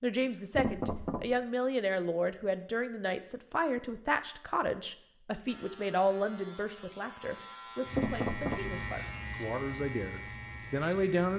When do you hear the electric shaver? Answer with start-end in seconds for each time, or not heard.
5.5-11.3.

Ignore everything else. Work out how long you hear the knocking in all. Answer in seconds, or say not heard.
2 s.